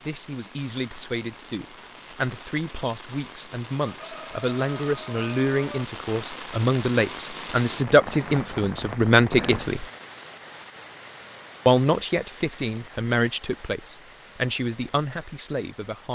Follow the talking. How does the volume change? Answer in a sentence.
The volume of the talking goes up, then down.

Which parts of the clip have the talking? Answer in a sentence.
You can hear the talking from 0.1 to 9.8 s and from 11.7 to 16.1 s.